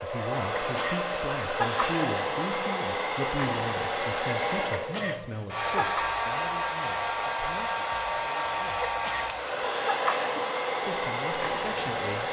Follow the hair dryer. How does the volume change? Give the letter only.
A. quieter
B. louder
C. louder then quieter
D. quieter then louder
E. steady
E.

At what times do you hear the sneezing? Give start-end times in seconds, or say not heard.
0.6-2.0, 4.7-6.0, 8.8-10.5.